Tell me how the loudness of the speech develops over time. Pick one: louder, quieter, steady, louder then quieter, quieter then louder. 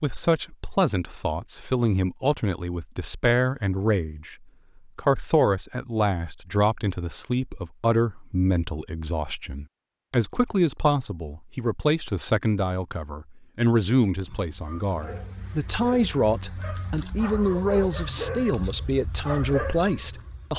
steady.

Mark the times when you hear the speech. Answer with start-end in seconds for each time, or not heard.
0.0-20.5.